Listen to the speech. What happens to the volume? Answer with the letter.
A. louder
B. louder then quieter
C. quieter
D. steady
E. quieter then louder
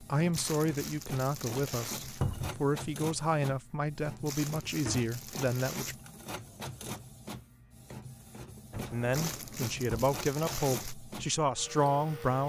D.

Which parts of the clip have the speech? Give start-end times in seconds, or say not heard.
0.0-6.0, 8.9-12.4.